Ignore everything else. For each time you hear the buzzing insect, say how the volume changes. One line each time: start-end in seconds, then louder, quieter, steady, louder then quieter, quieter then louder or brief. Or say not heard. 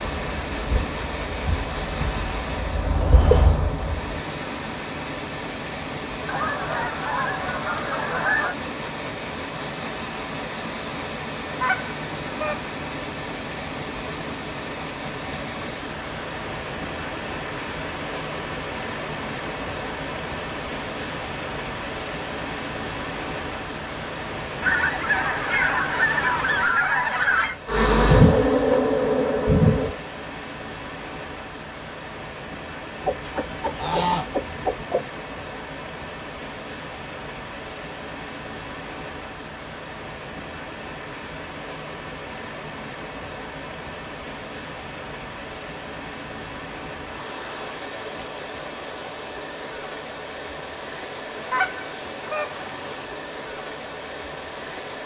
0.0-4.2 louder
27.6-29.9 brief.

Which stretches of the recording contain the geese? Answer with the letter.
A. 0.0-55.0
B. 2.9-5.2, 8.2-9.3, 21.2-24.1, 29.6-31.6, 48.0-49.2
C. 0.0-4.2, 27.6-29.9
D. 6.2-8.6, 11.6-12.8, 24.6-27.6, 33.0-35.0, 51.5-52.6
D.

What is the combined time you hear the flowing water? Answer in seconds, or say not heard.
55 s.